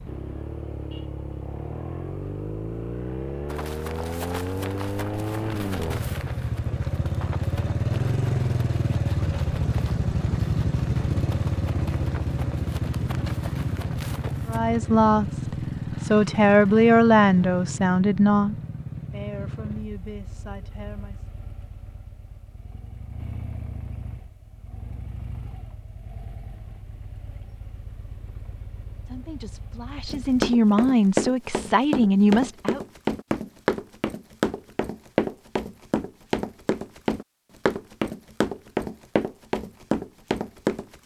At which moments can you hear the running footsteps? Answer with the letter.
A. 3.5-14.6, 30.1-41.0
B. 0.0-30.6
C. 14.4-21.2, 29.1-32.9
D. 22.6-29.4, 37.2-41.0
A.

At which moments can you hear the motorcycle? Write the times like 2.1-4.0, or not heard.
0.0-30.6.